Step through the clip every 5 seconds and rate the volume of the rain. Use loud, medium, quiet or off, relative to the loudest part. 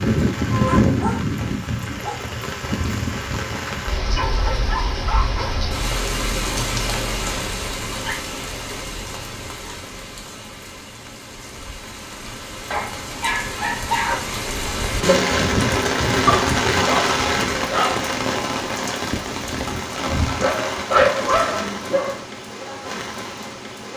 loud, medium, medium, loud, medium.